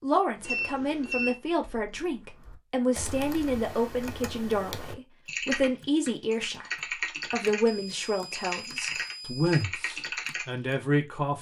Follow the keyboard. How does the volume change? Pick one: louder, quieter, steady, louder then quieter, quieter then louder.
louder.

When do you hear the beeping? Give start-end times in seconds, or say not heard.
0.5-1.4, 7.7-9.7.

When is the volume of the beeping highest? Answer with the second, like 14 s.
1 s.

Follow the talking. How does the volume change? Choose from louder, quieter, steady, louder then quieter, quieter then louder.
steady.